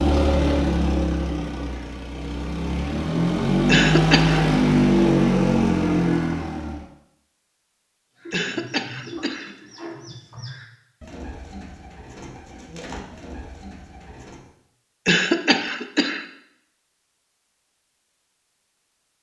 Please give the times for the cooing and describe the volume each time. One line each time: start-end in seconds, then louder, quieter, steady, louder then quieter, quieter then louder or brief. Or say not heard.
8.2-14.4 steady.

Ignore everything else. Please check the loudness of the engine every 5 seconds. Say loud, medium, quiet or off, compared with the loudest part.
loud, loud, off, off.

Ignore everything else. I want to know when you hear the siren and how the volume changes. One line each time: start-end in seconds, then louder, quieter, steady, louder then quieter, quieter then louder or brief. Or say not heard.
not heard.